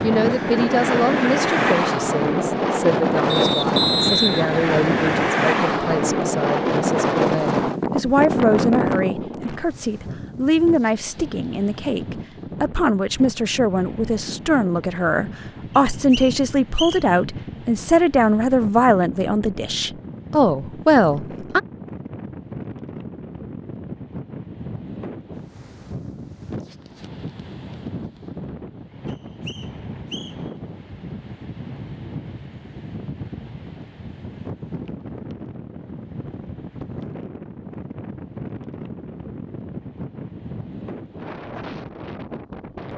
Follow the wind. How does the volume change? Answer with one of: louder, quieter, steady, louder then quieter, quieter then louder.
quieter.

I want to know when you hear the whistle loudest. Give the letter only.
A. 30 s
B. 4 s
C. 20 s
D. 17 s
B.